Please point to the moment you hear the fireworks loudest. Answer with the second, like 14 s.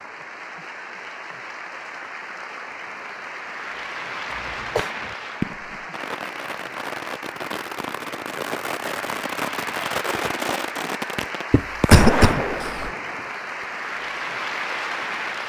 12 s.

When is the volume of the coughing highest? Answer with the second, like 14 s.
12 s.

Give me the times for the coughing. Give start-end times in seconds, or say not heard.
4.3-4.9, 11.5-12.9.